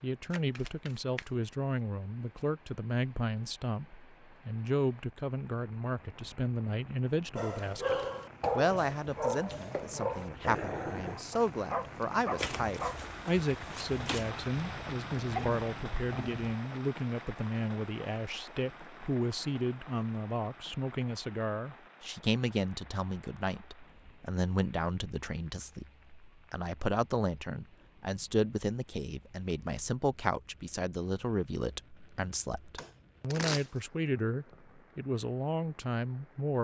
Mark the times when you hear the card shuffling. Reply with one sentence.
The card shuffling can be heard from 0.3 to 1.2 s, from 12.3 to 14.3 s and from 32.8 to 33.7 s.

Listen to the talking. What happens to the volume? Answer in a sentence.
The volume of the talking stays about the same.